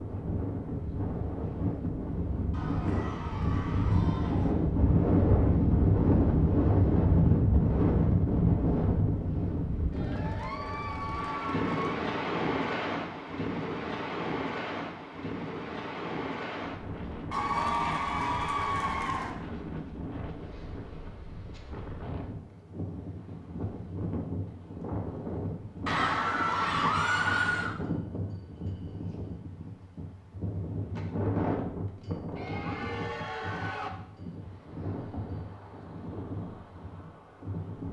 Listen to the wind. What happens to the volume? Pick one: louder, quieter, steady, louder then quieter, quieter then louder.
quieter.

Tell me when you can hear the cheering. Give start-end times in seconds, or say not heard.
2.5-4.5, 9.9-11.9, 17.3-19.3, 25.9-27.8, 32.4-33.9.